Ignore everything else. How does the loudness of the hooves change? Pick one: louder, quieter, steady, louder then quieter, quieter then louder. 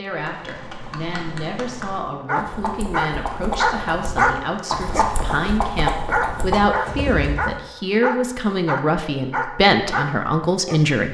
louder.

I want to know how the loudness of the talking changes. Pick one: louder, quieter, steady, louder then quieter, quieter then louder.
louder.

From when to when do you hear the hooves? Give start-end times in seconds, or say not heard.
0.1-7.5.